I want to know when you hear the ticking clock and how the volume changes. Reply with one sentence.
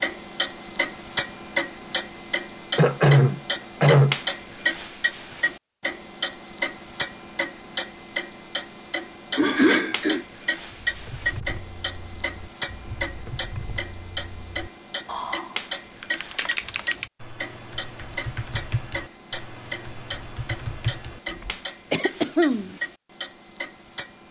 You can hear the ticking clock from 0.0 to 24.2 s, getting quieter.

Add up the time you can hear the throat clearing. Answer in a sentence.
The throat clearing can be heard for 3 seconds in total.